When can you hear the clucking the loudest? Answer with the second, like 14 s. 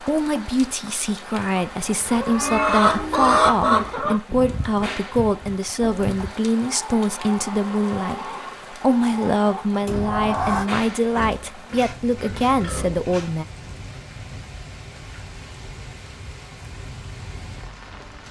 3 s.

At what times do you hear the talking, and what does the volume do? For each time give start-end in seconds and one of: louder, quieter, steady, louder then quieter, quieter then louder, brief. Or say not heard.
0.0-13.4 steady.